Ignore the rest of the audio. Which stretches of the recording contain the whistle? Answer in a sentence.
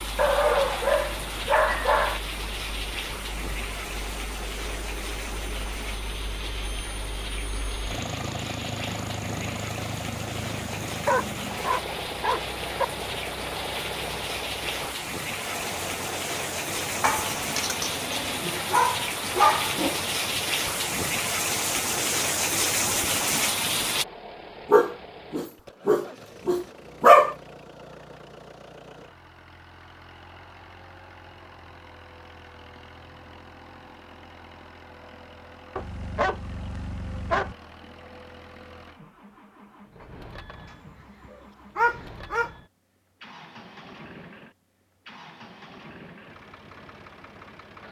You can't hear the whistle here.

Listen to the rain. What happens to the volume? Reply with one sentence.
The volume of the rain goes up.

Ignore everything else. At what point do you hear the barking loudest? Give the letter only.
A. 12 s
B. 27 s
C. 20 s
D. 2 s
B.